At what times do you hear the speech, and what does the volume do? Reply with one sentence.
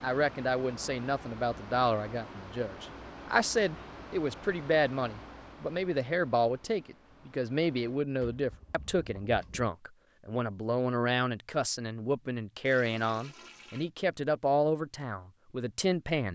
The speech can be heard from 0.0 to 16.3 s, at a steady volume.